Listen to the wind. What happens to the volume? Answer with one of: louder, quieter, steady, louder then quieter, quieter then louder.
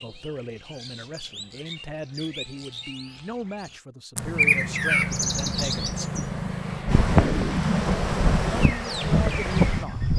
louder.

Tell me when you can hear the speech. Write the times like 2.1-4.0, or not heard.
0.0-6.1, 8.5-10.0.